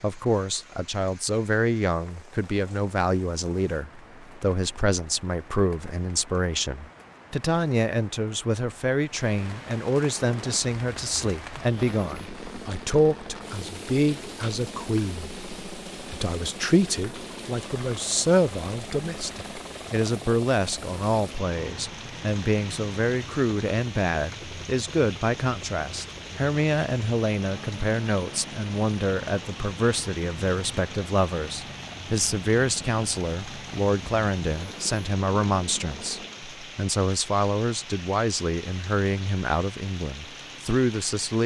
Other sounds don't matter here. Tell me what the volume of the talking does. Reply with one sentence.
The loudness of the talking stays about the same.